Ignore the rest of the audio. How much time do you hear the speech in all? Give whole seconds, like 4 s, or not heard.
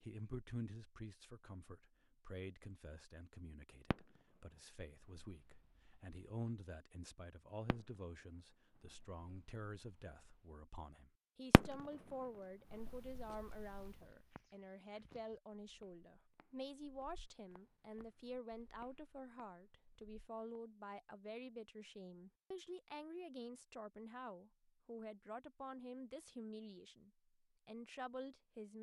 29 s.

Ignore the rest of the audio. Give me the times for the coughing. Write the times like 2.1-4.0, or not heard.
not heard.